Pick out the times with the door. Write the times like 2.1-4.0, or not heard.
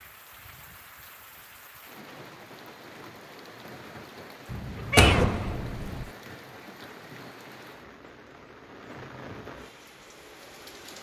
5.0-5.8.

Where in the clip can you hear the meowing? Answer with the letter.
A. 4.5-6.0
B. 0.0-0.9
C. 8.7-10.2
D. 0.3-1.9
A.